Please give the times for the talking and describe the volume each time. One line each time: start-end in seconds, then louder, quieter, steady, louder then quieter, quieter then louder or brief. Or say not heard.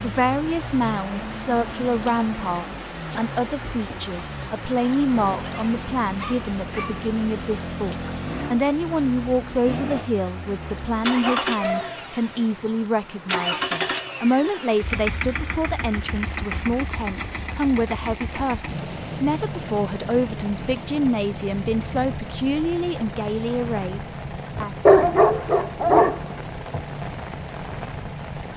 0.0-24.7 steady.